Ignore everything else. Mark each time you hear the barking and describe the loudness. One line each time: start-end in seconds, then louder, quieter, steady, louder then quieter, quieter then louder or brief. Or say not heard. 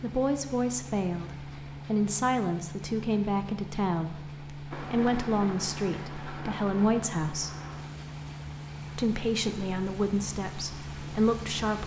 not heard.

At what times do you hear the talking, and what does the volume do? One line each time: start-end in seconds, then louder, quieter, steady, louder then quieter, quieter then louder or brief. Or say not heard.
0.0-7.5 steady
8.9-11.8 brief.